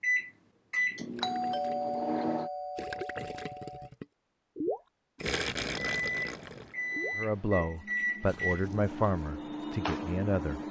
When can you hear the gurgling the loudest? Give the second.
5 s.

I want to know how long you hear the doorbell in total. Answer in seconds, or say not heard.
3 s.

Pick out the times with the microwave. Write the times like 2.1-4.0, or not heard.
0.0-2.5, 5.9-10.6.